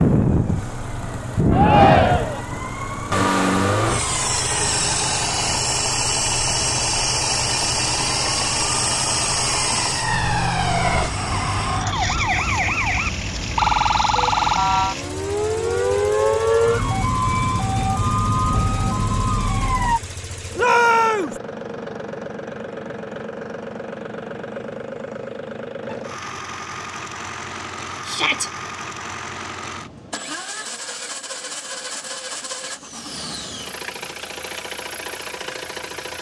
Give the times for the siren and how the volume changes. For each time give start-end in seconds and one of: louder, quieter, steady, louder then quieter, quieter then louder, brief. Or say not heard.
0.2-20.0 louder.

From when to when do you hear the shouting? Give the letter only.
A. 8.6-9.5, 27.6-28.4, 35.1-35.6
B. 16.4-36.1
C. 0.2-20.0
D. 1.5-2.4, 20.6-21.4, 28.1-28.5
D.